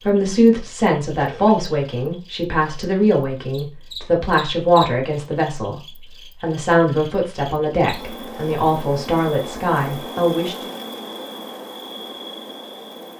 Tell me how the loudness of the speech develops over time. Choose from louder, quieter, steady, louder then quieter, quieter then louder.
steady.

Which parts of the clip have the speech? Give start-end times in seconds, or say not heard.
0.0-10.7.